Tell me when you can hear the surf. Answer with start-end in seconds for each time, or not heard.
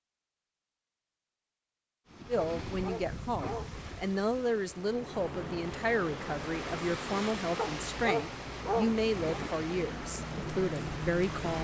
2.0-11.5.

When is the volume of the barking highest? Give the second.
9 s.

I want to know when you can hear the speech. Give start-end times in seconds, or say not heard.
2.2-11.5.